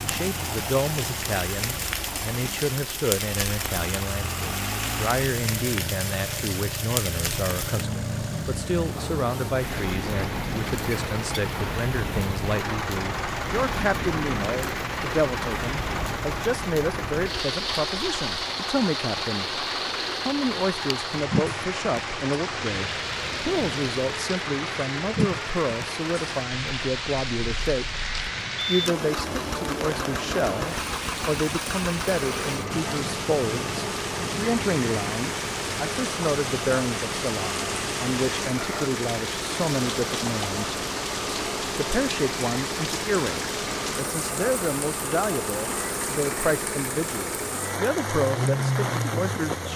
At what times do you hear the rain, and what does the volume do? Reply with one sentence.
You can hear the rain from 0.0 to 49.7 s, at a steady volume.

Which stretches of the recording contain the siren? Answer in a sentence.
You can't hear the siren here.